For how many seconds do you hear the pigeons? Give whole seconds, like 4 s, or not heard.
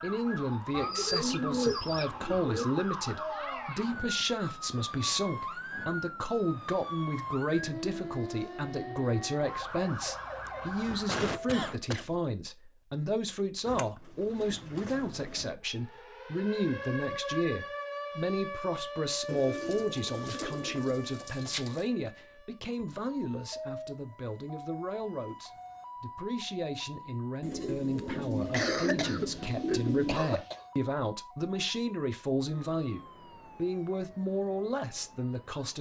9 s.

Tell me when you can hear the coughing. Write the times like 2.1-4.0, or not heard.
10.4-12.2, 28.5-30.6.